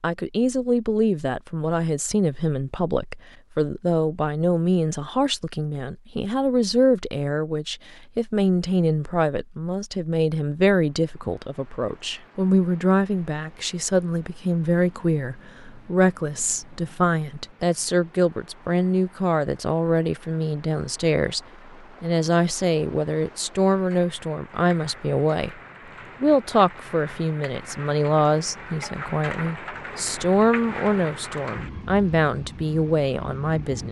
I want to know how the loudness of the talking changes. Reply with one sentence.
The loudness of the talking stays about the same.